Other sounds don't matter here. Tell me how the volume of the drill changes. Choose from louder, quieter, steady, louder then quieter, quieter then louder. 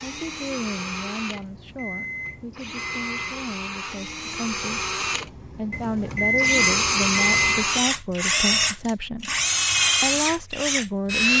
louder.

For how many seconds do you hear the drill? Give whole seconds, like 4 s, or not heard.
11 s.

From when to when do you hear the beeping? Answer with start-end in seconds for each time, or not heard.
1.3-3.4, 5.7-7.7.